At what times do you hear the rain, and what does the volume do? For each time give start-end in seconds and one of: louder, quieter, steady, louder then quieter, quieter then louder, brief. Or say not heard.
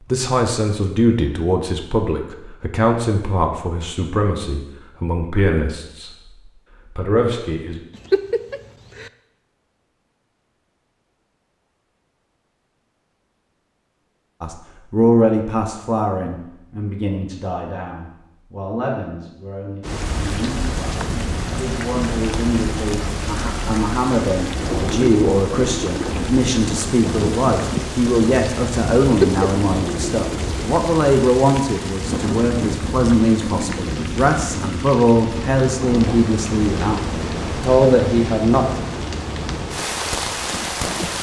19.8-41.1 steady.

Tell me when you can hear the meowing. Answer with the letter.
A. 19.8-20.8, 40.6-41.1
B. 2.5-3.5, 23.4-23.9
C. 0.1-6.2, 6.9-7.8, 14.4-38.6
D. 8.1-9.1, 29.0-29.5
D.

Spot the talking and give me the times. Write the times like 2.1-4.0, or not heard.
0.1-6.2, 6.9-7.8, 14.4-38.6.